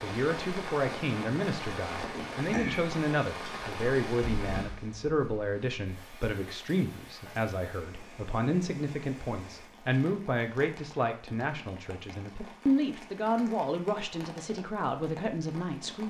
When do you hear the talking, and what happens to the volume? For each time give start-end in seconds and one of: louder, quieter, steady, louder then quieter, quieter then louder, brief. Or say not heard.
0.0-16.0 steady.